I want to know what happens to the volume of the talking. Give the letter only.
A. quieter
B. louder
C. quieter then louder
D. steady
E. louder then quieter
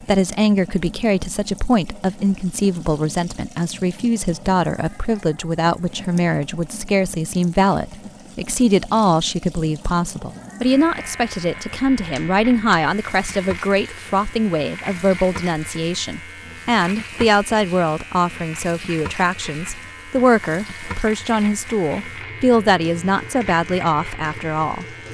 D.